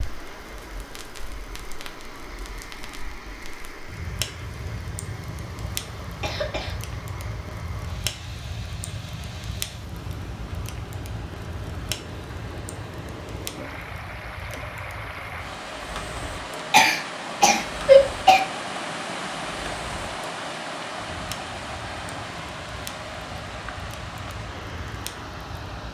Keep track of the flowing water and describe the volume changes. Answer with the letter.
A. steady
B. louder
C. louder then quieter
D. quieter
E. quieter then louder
B.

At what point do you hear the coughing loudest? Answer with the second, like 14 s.
18 s.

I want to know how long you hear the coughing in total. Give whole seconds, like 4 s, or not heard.
2 s.